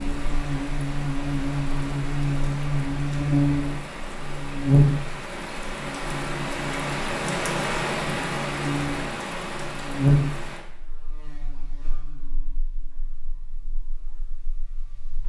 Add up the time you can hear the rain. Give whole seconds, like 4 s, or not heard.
11 s.